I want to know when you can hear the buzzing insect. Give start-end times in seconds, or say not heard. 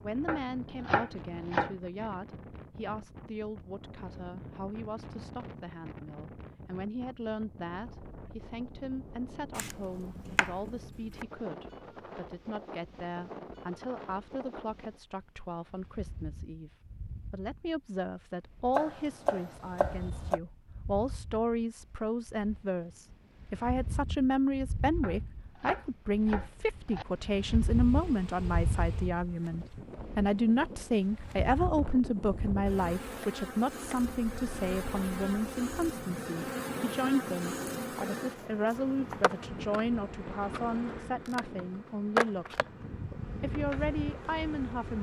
27.6-44.9.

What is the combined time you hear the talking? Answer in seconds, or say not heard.
44 s.